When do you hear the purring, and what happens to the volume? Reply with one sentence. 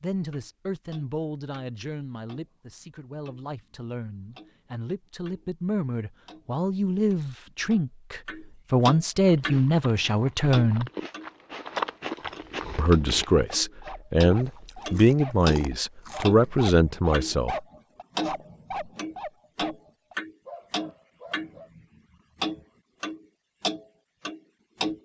You can't hear the purring here.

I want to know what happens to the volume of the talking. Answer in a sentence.
The loudness of the talking goes up.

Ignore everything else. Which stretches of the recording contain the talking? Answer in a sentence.
The talking can be heard from 0.0 to 10.9 s and from 12.8 to 17.6 s.